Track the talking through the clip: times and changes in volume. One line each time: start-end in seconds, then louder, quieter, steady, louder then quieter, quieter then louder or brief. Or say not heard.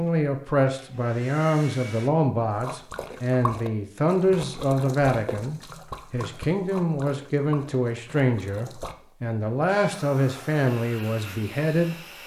0.0-12.1 steady.